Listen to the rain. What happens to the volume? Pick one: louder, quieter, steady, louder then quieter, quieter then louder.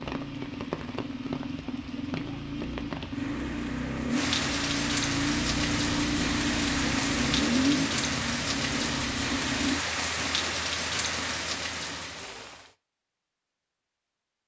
louder.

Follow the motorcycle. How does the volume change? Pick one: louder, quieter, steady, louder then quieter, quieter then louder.
louder.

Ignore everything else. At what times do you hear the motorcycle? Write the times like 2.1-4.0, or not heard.
0.0-9.8.